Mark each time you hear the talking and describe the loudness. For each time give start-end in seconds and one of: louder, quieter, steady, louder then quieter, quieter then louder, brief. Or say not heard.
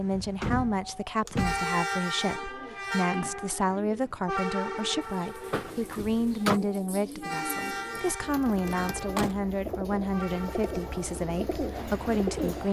0.0-12.6 steady.